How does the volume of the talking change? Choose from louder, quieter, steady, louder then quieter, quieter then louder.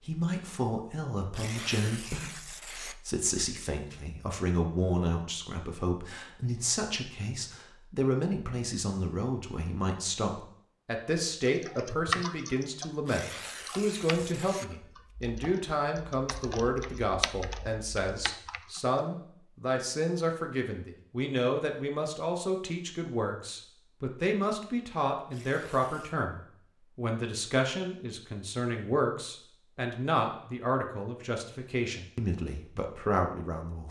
steady.